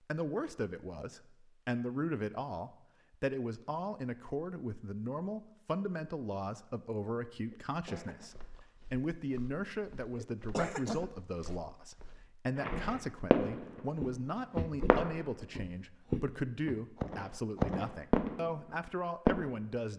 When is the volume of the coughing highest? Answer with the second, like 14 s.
11 s.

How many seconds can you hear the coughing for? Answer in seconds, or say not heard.
2 s.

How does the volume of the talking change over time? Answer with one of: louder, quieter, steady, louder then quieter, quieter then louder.
steady.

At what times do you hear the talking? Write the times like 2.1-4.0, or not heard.
0.1-19.9.